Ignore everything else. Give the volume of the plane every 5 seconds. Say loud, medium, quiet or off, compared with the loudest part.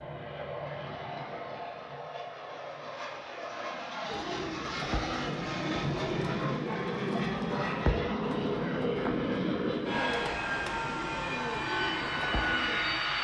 medium, loud, loud.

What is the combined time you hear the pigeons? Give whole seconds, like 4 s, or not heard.
9 s.